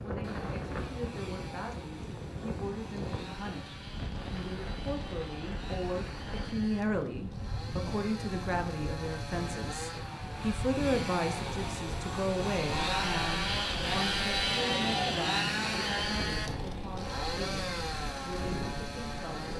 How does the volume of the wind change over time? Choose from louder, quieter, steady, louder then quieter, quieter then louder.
steady.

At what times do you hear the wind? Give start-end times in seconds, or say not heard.
0.0-19.5.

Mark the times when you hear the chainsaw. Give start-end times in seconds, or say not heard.
0.1-19.5.